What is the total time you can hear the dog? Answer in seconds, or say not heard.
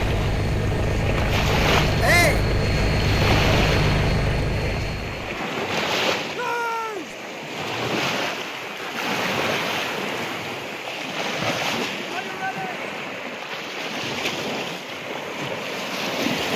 not heard.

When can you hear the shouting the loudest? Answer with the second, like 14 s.
2 s.